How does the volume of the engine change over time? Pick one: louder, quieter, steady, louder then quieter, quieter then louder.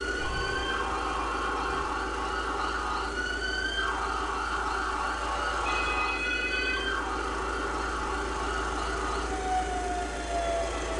steady.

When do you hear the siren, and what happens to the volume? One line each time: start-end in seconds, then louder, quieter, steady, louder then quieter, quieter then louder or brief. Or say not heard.
0.0-10.9 steady.